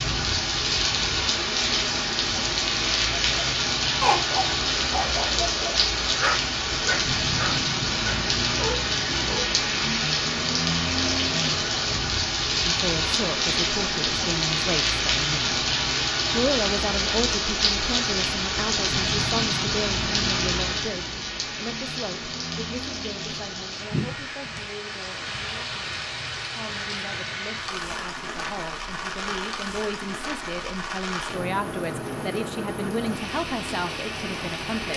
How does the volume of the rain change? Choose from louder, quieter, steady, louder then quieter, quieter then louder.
quieter.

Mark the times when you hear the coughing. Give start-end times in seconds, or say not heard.
not heard.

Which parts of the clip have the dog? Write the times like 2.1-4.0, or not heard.
3.2-9.5.